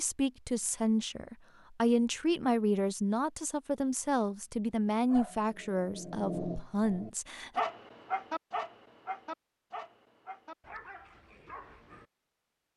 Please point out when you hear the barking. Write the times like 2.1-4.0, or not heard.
5.1-12.1.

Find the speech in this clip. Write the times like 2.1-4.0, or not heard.
0.0-7.6.